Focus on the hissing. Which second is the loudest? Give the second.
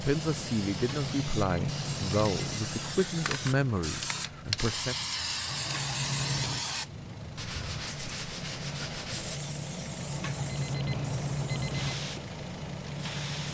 5 s.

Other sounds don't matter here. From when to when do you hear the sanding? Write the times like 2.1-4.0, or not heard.
7.3-9.4.